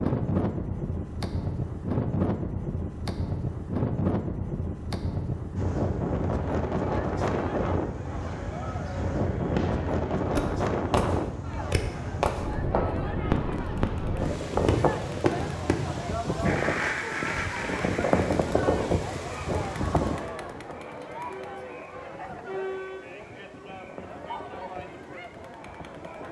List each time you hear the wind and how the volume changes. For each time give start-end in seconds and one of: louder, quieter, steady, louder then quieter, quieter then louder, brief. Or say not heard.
0.0-26.2 quieter.